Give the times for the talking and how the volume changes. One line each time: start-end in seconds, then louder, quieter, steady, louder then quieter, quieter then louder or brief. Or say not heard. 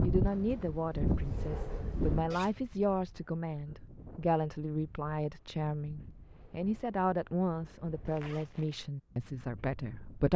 0.0-10.3 steady.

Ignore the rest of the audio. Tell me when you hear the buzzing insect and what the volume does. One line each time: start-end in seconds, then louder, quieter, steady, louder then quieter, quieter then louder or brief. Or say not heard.
not heard.